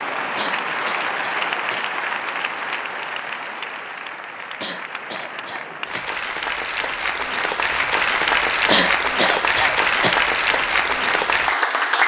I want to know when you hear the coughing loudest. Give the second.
9 s.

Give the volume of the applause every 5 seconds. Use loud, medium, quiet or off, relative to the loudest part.
medium, loud, loud.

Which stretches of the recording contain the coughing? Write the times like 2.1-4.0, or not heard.
0.3-1.9, 4.6-6.1, 8.7-10.2.